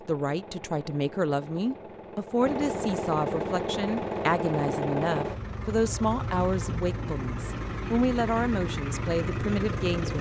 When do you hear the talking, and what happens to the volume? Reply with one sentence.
You can hear the talking from 0.1 to 10.1 s, at a steady volume.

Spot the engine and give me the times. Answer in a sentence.
You can hear the engine from 0.0 to 10.1 s.